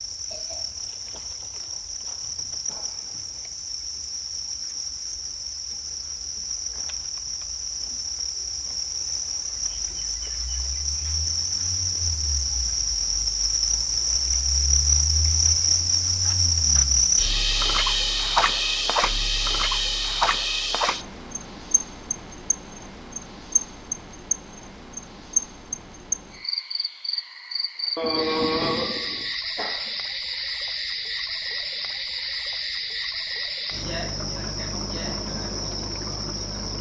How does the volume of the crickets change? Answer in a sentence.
The loudness of the crickets goes up, then down.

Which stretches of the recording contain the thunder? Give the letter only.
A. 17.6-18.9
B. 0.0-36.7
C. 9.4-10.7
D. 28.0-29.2
D.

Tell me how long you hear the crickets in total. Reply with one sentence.
The crickets can be heard for 37 seconds in total.